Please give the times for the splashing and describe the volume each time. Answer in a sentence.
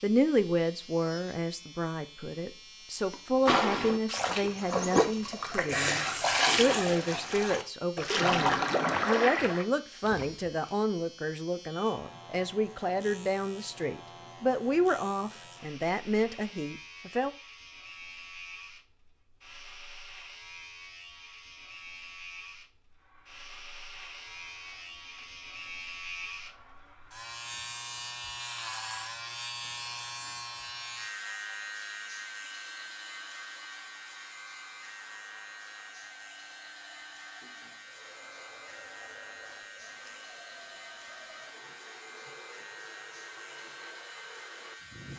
You can hear the splashing from 3.1 to 10.5 s, at a steady volume.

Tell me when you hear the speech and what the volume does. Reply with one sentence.
The speech can be heard from 0.0 to 17.3 s, at a steady volume.